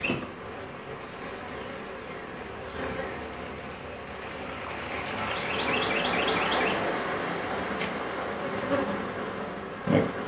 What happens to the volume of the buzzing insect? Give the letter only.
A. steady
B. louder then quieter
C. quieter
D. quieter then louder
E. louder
E.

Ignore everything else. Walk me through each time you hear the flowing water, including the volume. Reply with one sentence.
The flowing water can be heard from 0.2 to 10.2 s, getting louder then quieter.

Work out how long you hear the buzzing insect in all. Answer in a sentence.
You can hear the buzzing insect for 10 seconds altogether.